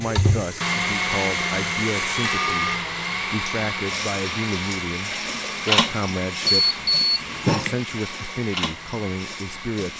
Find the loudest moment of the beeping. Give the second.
7 s.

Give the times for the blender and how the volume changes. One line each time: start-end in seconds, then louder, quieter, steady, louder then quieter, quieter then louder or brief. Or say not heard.
0.0-9.9 quieter.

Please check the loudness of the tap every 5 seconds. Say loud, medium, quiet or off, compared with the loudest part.
medium, loud.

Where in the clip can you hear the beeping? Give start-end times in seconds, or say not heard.
2.1-2.9, 6.7-7.8.